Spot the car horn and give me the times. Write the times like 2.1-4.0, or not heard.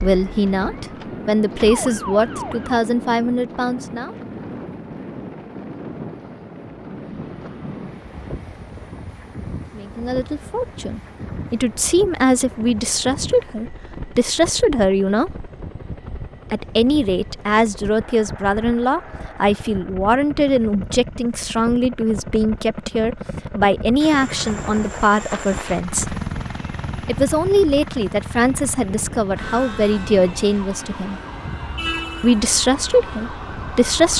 31.8-32.5.